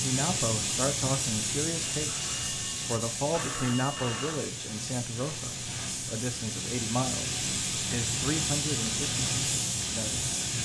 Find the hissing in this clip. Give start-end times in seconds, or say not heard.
0.0-10.6.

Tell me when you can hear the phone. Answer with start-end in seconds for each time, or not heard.
1.9-4.5.